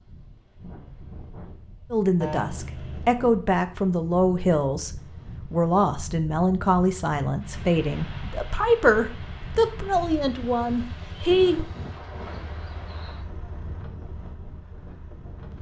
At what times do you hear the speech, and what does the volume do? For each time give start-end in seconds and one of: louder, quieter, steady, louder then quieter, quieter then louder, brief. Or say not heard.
1.9-11.7 steady.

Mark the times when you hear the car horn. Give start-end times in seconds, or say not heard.
2.2-3.1.